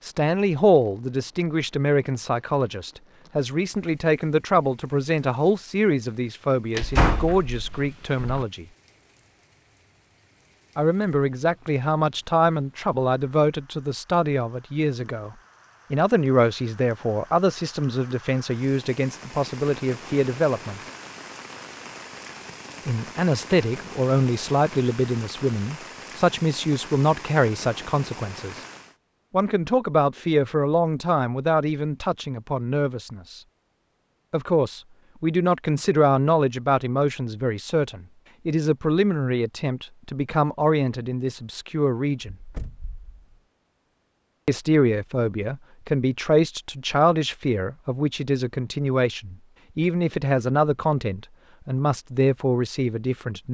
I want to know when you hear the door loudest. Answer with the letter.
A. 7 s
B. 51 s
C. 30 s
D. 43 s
A.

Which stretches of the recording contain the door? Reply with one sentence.
The door can be heard from 6.8 to 8.4 s and from 42.4 to 43.1 s.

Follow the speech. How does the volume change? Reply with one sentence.
The volume of the speech stays about the same.